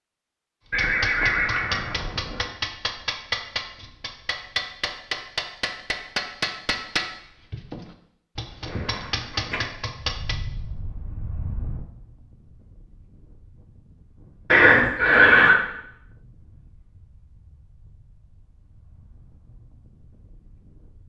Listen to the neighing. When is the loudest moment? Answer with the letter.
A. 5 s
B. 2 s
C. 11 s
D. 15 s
D.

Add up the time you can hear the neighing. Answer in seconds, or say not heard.
4 s.